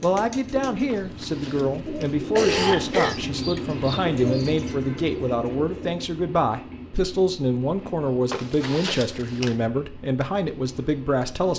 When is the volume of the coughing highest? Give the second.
3 s.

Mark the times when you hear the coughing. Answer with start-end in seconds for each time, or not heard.
0.9-3.1, 8.3-9.6.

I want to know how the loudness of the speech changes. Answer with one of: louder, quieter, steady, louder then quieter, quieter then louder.
steady.